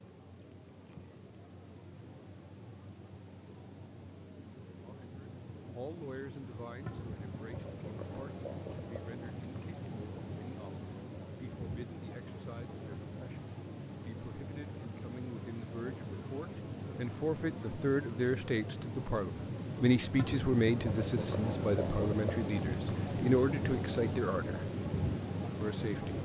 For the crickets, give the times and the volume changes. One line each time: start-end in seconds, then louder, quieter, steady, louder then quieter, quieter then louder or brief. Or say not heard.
0.0-26.2 louder.